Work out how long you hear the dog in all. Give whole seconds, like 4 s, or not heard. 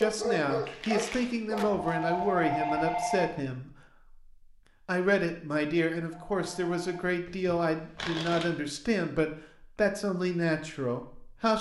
2 s.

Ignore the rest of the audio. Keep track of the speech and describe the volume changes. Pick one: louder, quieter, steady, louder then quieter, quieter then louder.
steady.